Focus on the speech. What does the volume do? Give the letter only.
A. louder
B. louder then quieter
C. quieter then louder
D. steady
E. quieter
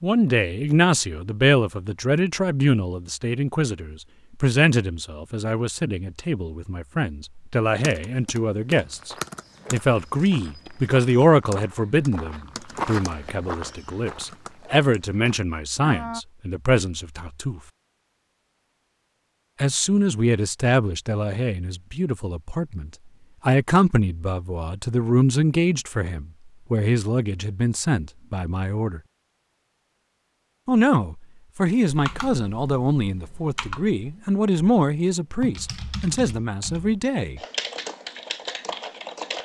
D.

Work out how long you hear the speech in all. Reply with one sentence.
The speech can be heard for 34 seconds in total.